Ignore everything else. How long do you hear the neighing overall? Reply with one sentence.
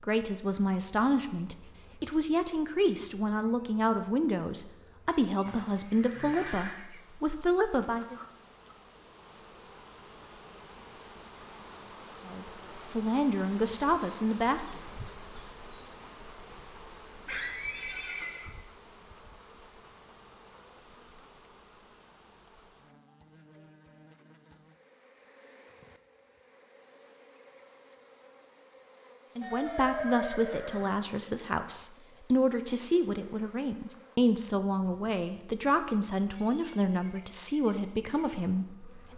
The neighing can be heard for 4 seconds in total.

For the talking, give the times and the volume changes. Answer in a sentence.
The talking can be heard from 0.0 to 8.2 s, at a steady volume; briefly from 12.2 to 14.8 s; and from 29.4 to 39.1 s, at a steady volume.